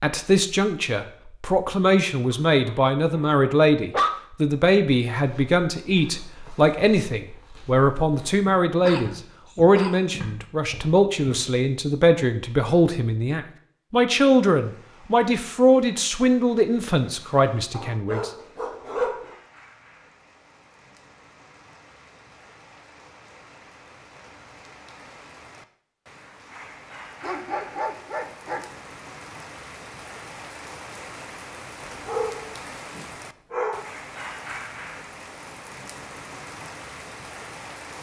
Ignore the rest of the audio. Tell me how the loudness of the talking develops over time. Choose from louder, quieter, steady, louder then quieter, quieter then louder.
steady.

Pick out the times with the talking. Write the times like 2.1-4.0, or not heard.
0.0-18.3.